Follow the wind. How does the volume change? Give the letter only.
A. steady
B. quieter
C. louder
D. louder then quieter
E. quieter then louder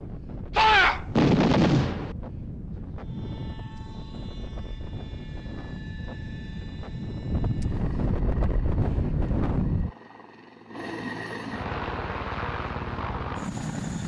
C.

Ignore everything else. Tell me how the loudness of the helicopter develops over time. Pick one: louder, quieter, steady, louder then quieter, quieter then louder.
louder.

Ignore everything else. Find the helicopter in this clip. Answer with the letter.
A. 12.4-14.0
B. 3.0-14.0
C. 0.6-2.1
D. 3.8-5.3
B.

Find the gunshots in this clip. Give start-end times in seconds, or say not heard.
0.6-2.1.